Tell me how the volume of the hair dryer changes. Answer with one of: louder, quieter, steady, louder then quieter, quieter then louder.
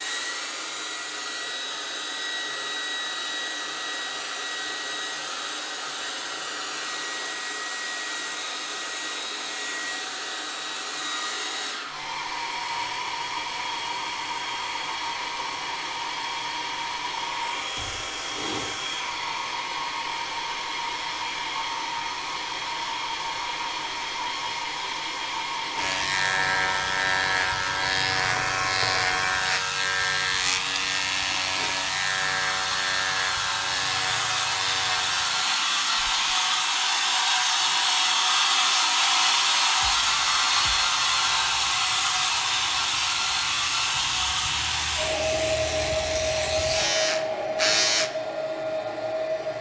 louder.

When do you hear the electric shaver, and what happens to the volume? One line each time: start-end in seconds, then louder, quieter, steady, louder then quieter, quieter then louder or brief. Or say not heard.
25.8-36.7 quieter
39.8-48.1 louder.